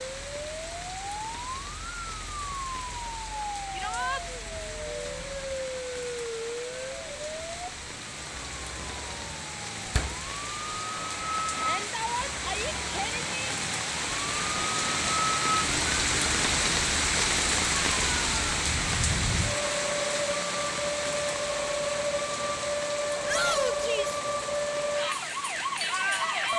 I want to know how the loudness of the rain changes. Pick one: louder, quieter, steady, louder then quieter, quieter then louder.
louder then quieter.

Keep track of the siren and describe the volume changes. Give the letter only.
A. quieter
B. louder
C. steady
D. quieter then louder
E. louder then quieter
B.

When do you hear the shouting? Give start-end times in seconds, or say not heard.
3.7-4.2, 11.6-13.6, 23.2-24.2.